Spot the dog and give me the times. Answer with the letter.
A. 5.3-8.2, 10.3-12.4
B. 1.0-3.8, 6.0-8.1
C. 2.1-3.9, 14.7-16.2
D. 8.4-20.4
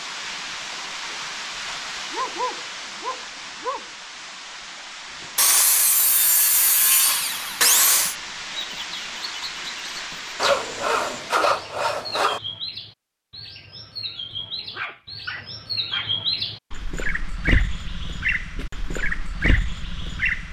C.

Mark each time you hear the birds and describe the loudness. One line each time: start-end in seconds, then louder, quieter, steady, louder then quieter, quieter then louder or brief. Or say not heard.
8.4-20.4 louder.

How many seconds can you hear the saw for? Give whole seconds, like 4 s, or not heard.
5 s.